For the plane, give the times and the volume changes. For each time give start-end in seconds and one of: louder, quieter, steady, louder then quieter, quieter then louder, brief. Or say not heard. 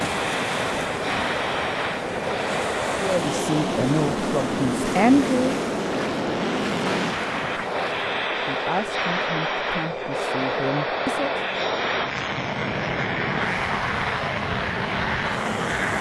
0.0-15.9 steady.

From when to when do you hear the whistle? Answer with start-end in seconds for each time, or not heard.
not heard.